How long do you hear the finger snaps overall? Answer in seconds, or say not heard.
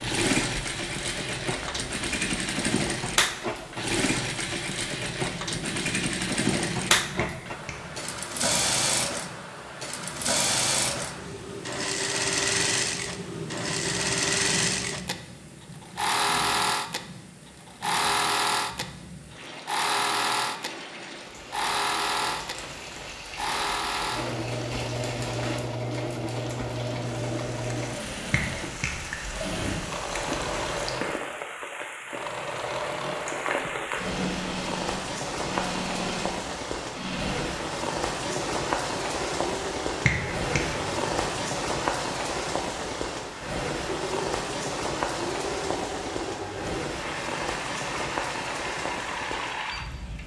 2 s.